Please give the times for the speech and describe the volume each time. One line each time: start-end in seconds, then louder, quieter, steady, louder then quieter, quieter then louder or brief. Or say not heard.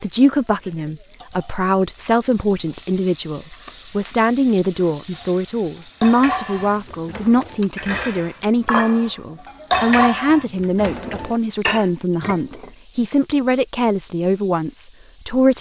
0.0-15.5 steady.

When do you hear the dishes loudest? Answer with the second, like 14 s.
10 s.